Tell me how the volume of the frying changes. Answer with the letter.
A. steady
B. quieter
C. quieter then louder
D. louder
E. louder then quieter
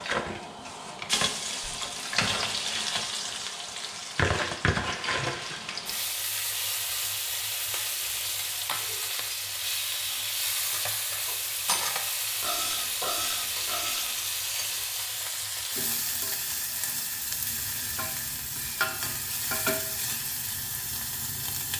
A.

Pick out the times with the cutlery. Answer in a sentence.
The cutlery can be heard from 10.1 to 14.8 s.